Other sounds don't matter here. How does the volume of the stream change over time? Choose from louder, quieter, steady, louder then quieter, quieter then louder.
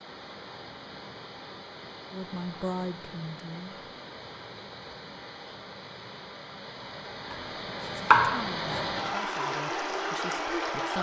louder.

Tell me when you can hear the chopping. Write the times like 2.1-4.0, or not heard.
7.3-8.8.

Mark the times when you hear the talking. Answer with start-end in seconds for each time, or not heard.
2.1-3.8, 8.0-10.9.